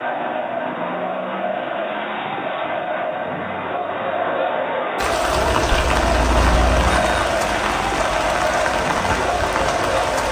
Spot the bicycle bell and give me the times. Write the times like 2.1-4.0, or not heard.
5.3-7.2.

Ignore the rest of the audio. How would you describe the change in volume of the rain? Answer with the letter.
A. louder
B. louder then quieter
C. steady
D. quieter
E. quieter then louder
C.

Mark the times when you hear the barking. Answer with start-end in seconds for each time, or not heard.
not heard.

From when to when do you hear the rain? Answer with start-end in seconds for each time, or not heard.
5.0-10.2.